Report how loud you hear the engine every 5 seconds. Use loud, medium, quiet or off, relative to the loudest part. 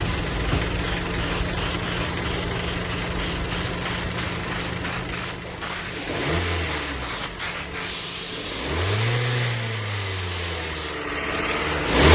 medium, medium, loud.